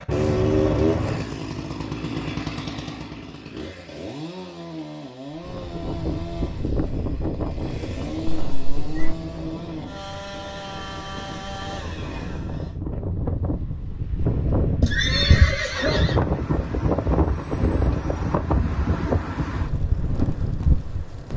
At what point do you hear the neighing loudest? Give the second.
15 s.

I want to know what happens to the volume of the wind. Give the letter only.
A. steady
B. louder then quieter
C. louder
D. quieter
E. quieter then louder
E.